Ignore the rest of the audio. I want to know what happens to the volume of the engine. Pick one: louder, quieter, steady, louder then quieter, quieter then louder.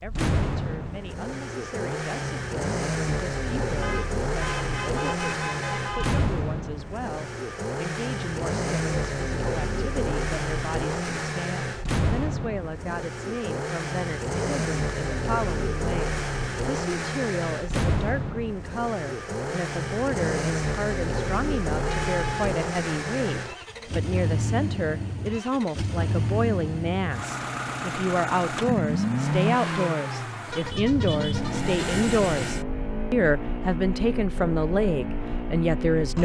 steady.